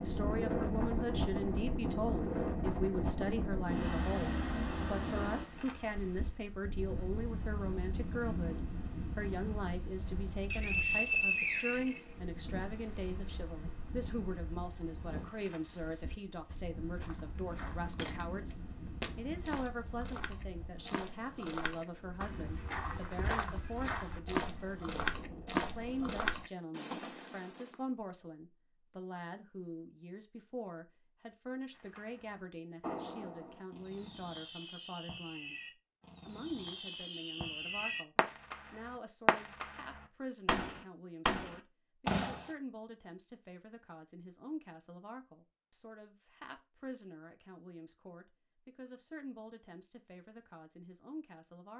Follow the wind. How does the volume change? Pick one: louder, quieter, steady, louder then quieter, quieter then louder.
quieter.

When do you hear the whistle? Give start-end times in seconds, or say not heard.
10.5-12.0.